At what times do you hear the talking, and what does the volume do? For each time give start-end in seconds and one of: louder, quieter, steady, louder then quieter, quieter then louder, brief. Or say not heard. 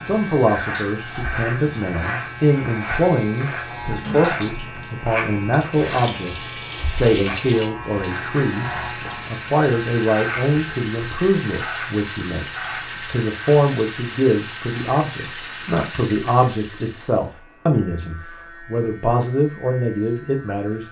0.0-20.8 steady.